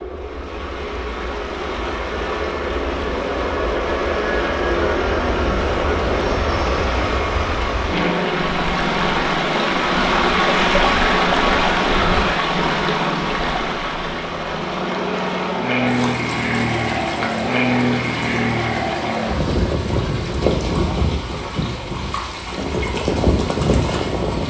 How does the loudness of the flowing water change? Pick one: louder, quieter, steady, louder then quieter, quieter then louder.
louder then quieter.